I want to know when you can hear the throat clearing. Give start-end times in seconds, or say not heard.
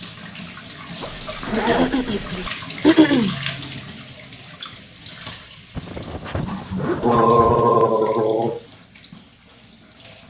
1.5-3.4, 6.5-8.6.